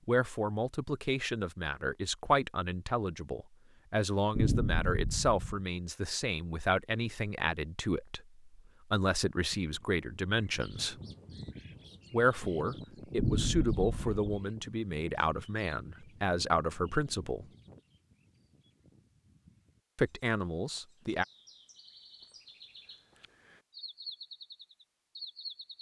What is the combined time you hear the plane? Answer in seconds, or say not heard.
not heard.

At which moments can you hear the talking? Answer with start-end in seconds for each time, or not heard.
0.1-10.9, 12.1-17.4, 19.9-21.2.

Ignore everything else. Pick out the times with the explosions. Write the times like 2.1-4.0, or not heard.
4.3-5.6, 13.2-14.2.